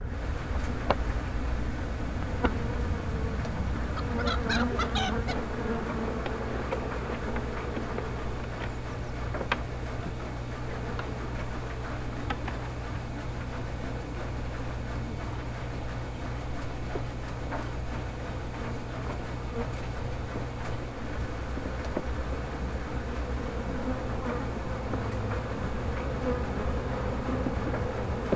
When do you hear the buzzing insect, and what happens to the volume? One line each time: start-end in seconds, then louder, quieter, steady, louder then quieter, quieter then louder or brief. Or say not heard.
0.0-28.3 quieter then louder.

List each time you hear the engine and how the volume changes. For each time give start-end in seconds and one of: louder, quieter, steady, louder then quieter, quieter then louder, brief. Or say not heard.
0.0-28.3 steady.